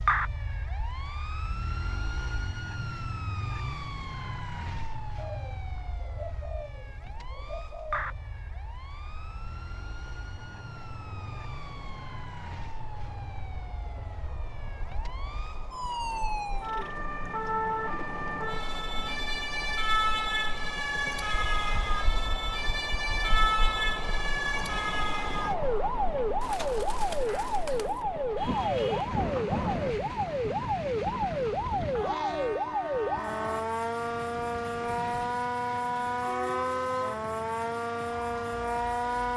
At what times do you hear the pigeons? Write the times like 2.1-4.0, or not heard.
5.2-8.2, 26.4-28.1.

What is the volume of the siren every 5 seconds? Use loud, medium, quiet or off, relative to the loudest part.
medium, quiet, quiet, loud, loud, loud, loud, loud.